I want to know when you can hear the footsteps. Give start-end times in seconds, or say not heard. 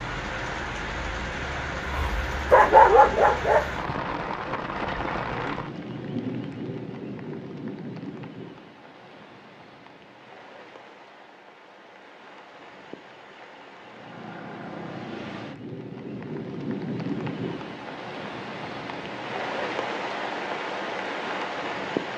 not heard.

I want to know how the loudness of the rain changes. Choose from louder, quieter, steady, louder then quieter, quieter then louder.
quieter then louder.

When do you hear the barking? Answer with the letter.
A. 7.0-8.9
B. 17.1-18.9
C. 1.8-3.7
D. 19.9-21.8
C.